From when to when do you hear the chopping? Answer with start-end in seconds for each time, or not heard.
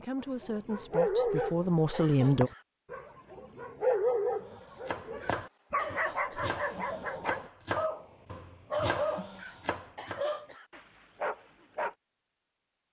4.4-10.2.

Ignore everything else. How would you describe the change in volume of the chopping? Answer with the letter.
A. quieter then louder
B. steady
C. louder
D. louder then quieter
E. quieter
A.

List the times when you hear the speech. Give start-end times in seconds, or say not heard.
0.0-2.5.